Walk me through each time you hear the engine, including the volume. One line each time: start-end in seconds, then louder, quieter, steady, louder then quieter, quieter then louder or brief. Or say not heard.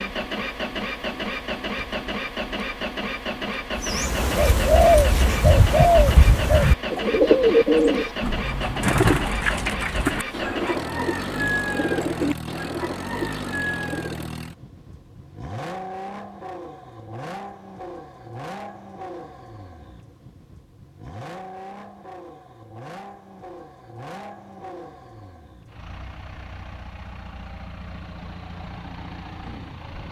0.0-30.0 quieter.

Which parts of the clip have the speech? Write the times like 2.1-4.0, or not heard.
not heard.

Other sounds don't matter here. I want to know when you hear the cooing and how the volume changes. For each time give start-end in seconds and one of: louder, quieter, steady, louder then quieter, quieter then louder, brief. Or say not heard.
3.8-14.3 quieter.